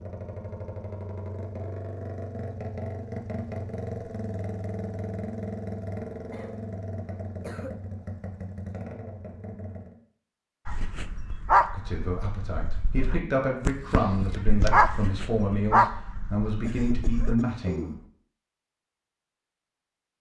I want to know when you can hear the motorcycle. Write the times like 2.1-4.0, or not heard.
0.0-10.0.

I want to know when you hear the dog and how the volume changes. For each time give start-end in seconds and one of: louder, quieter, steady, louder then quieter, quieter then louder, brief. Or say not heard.
10.7-17.4 quieter then louder.